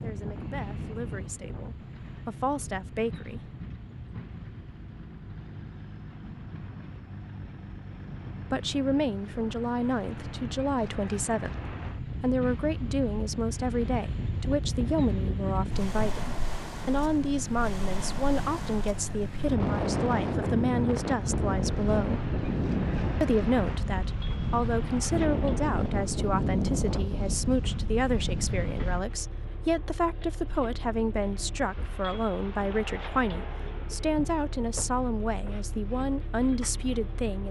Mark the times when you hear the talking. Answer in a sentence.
The talking can be heard from 0.0 to 3.5 s, from 8.5 to 22.2 s and from 23.2 to 37.4 s.